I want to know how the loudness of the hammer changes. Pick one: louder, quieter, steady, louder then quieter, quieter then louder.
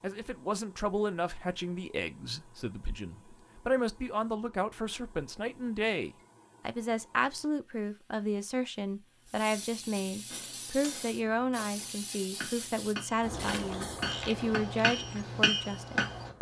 louder.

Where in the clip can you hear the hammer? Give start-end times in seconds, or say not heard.
10.2-16.3.